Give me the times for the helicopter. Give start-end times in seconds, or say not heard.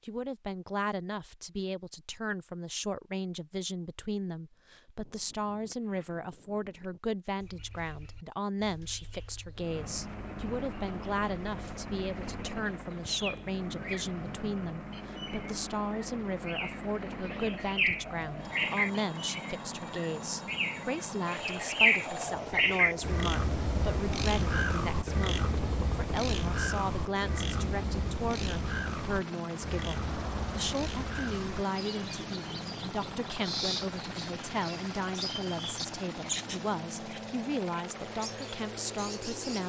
9.6-39.6.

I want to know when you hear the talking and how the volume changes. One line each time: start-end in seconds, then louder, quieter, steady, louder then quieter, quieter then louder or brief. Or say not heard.
0.1-39.6 steady.